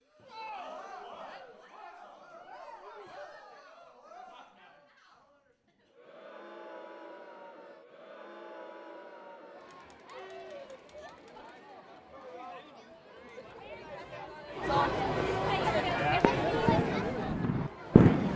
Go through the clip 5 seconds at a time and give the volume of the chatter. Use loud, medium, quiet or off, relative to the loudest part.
quiet, quiet, medium, loud.